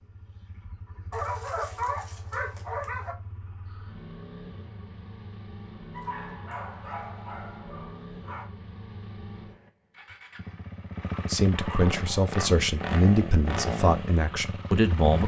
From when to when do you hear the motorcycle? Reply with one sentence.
You can hear the motorcycle from 0.0 to 15.2 s.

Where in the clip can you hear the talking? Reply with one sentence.
You can hear the talking from 11.2 to 15.2 s.